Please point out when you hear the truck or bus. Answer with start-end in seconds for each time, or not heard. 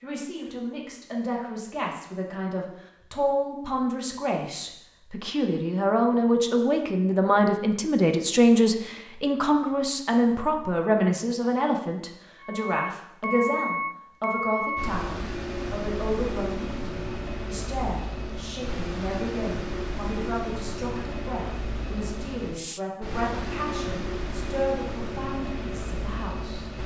12.4-26.8.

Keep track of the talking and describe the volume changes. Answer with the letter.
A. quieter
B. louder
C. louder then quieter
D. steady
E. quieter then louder
C.